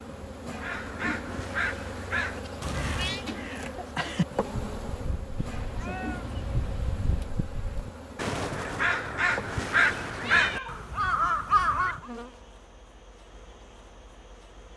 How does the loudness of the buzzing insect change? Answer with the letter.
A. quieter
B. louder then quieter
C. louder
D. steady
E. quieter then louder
A.